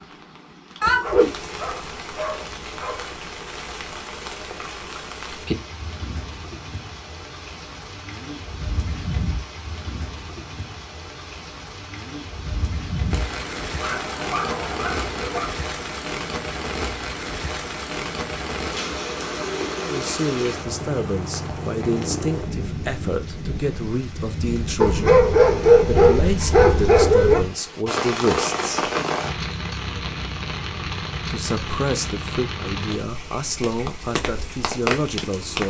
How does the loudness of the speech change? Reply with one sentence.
The loudness of the speech stays about the same.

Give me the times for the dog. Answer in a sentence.
The dog can be heard from 0.8 to 3.0 s, from 13.8 to 15.6 s and from 24.8 to 27.4 s.